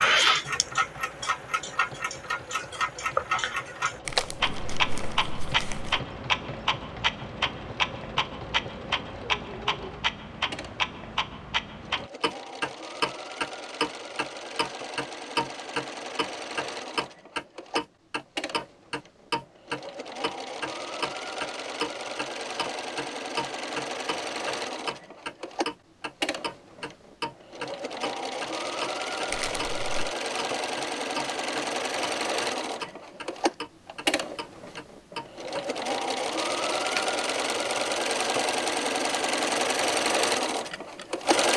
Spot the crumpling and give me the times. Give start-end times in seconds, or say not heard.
4.0-6.0, 29.3-30.1.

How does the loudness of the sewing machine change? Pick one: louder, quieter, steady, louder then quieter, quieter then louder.
louder.